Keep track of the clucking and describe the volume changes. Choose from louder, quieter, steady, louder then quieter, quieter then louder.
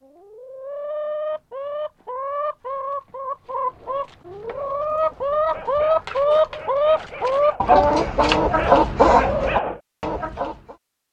louder.